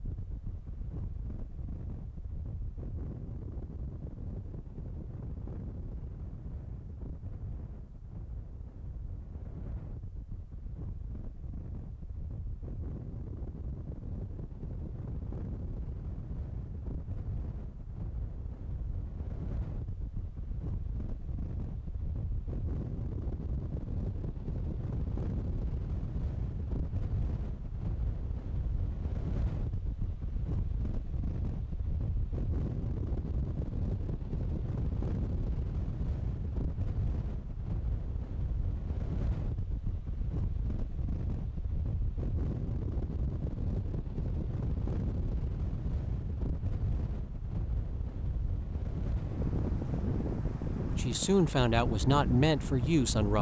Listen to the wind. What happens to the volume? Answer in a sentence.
The volume of the wind goes up.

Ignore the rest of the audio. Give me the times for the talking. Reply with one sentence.
The talking can be heard from 50.9 to 53.3 s.